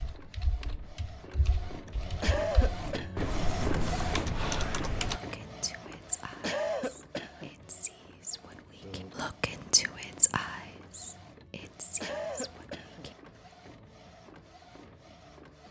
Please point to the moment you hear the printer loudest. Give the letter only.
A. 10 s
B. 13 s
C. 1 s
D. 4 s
D.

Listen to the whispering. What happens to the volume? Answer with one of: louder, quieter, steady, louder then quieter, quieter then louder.
louder then quieter.